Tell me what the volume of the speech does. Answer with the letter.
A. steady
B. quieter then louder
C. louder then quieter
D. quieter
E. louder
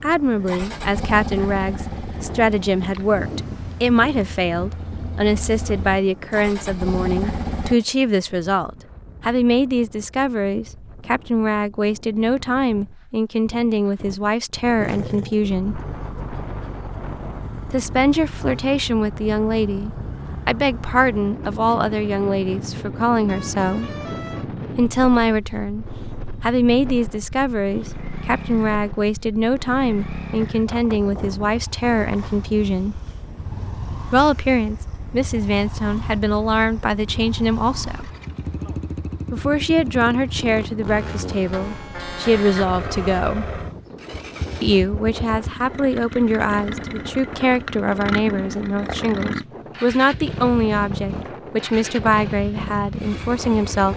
A.